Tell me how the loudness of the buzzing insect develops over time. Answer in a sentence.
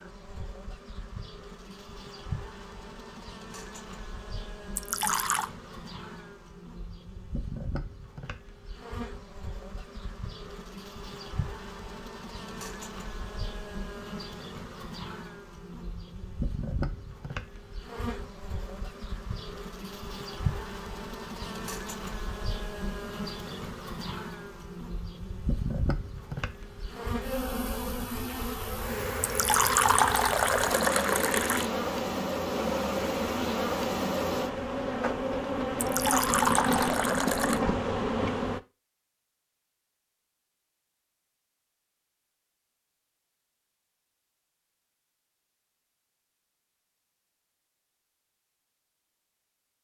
The loudness of the buzzing insect goes up.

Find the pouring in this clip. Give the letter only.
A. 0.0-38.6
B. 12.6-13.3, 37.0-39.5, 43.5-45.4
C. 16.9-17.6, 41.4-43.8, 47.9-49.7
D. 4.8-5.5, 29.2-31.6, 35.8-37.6
D.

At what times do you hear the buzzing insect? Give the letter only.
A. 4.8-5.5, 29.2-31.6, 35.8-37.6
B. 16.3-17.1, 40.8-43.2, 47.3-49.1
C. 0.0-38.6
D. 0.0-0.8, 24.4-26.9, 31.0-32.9
C.